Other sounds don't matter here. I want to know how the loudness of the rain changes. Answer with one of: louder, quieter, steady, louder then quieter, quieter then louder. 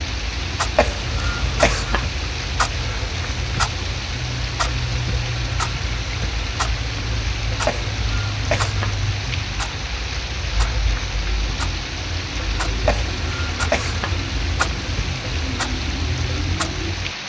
steady.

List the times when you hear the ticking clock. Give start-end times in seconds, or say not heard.
0.0-17.1.